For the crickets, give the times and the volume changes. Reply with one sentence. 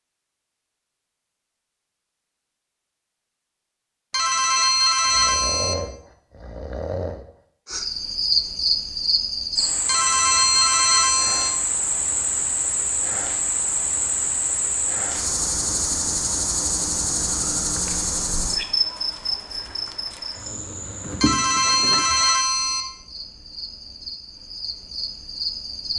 The crickets can be heard from 7.7 to 25.9 s, getting quieter.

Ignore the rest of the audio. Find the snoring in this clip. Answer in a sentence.
The snoring can be heard from 5.0 to 7.2 s.